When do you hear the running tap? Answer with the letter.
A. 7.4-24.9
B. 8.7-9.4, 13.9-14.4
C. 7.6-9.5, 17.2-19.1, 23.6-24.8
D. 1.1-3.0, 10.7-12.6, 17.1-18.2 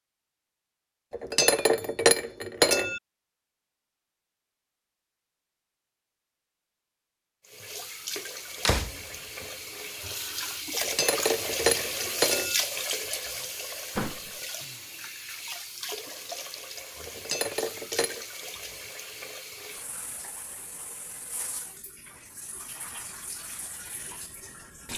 A.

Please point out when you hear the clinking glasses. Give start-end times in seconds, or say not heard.
1.1-3.0, 10.7-12.6, 17.1-18.2.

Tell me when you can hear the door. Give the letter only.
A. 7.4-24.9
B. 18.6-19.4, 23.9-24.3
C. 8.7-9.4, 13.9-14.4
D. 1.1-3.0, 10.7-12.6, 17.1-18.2
C.